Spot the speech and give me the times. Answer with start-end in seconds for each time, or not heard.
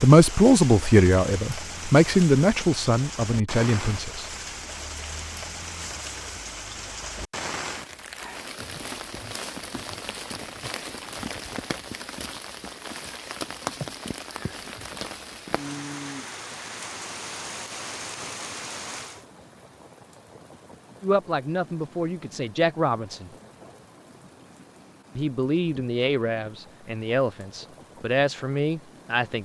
0.0-4.3, 21.0-23.3, 25.1-29.4.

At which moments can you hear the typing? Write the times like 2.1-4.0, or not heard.
not heard.